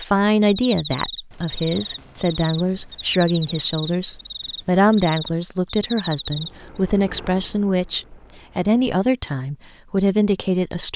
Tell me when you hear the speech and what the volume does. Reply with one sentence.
You can hear the speech from 0.0 to 10.9 s, at a steady volume.